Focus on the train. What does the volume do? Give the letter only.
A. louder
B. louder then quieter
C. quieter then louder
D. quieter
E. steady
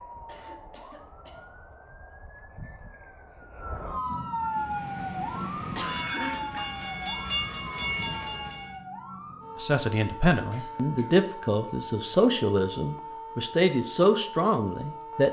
A.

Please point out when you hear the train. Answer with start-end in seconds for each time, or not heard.
4.3-8.8.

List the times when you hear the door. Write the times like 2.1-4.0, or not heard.
not heard.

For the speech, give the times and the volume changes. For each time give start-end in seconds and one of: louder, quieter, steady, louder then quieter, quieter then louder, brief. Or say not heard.
9.6-15.2 steady.